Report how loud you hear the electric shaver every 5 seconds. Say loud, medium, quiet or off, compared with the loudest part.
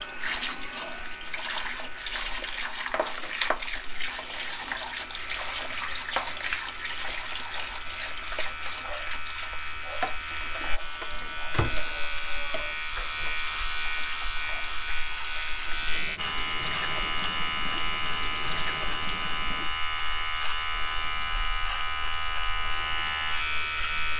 quiet, medium, loud, loud, loud.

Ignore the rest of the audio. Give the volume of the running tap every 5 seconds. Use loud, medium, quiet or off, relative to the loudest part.
loud, loud, medium, medium, quiet.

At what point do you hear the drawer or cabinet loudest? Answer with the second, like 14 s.
12 s.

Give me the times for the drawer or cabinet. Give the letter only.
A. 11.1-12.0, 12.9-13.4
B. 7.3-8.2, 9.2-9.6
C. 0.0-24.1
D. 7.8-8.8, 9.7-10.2
A.